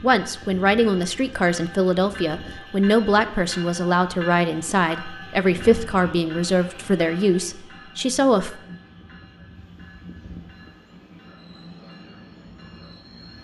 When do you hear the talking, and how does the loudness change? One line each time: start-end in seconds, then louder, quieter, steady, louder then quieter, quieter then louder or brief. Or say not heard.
0.0-8.6 steady.